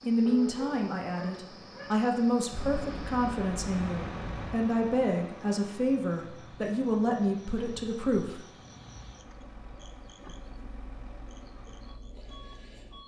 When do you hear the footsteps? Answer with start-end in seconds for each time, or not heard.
not heard.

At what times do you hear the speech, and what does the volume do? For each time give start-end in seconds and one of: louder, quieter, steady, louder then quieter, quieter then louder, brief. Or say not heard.
0.0-8.5 steady.